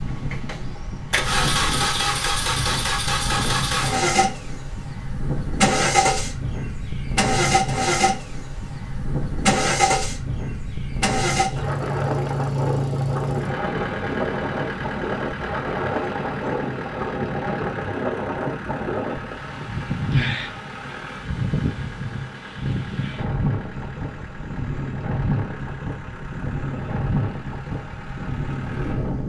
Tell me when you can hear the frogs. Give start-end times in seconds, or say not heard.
not heard.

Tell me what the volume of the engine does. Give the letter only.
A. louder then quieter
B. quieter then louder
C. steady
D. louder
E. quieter
E.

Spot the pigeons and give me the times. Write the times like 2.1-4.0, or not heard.
not heard.